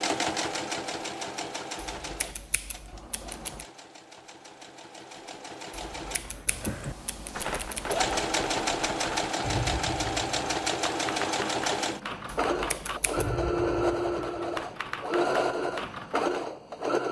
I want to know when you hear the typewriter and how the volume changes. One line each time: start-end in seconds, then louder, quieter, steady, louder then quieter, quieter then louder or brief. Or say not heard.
6.5-16.4 steady.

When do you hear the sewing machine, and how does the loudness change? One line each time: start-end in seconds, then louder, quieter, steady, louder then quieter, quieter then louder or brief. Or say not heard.
0.0-17.0 quieter then louder.